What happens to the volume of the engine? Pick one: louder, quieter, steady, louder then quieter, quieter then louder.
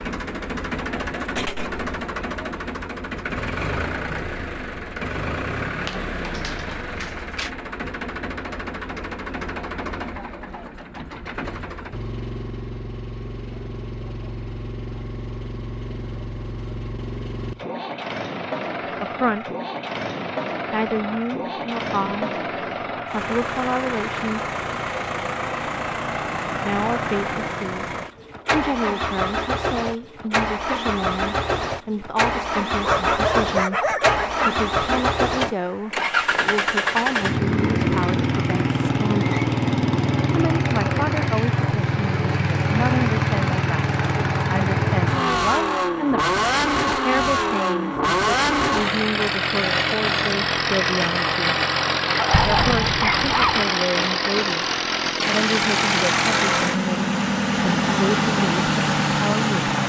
louder.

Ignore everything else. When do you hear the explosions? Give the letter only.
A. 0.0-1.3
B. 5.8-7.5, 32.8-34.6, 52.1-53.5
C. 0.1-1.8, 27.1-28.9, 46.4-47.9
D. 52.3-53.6
D.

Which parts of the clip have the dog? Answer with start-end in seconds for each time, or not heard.
5.8-7.5, 32.8-34.6, 52.1-53.5.